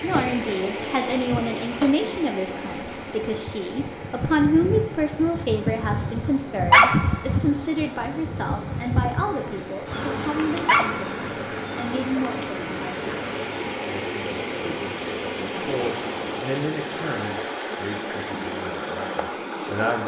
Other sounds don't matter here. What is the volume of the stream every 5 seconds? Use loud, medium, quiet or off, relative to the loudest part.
loud, medium, loud, loud.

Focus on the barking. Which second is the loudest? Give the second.
7 s.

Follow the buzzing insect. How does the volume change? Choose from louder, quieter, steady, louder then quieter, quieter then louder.
louder then quieter.